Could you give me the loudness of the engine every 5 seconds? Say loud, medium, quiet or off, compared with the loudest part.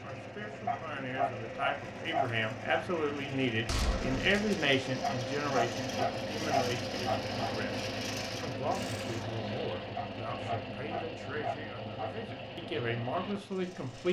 medium, loud, medium.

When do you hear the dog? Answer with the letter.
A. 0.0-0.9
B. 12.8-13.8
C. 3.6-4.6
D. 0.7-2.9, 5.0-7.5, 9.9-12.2
D.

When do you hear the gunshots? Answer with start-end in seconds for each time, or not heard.
3.6-4.6.